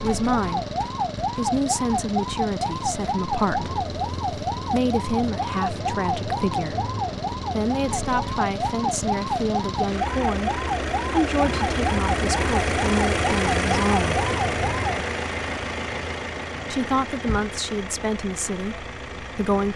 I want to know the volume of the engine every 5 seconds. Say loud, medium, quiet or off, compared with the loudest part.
medium, medium, loud, medium.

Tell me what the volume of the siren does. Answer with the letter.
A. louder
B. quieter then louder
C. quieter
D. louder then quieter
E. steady
E.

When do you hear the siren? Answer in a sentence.
The siren can be heard from 0.0 to 15.1 s.